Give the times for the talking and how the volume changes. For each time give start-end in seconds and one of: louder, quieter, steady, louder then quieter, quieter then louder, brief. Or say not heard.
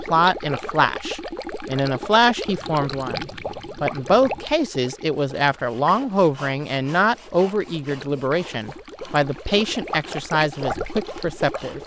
0.1-11.8 steady.